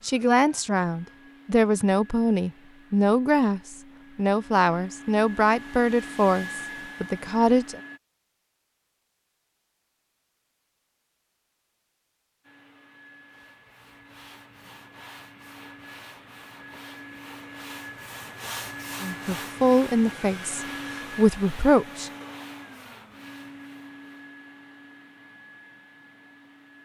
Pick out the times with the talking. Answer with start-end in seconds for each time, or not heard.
0.0-7.8, 19.0-22.1.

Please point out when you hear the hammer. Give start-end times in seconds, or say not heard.
not heard.